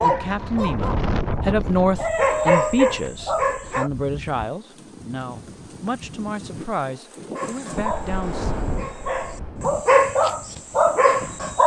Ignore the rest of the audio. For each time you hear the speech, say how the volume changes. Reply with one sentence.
The speech can be heard from 0.0 to 8.6 s, getting quieter.